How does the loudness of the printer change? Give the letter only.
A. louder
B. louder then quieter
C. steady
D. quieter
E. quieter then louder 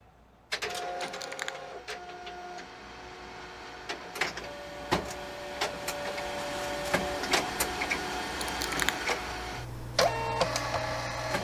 A.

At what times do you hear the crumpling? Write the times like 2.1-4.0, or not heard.
0.9-1.6, 8.4-9.1.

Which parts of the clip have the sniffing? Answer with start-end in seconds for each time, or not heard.
not heard.